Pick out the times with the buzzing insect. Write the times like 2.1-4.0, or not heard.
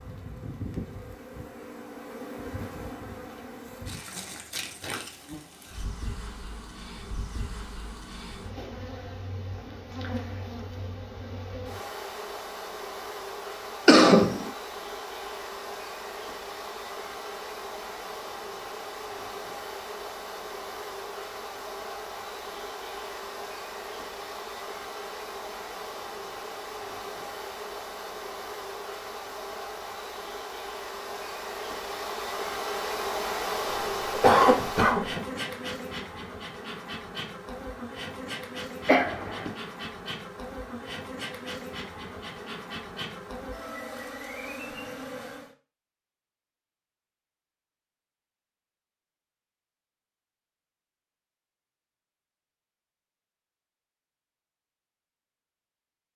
0.0-45.5.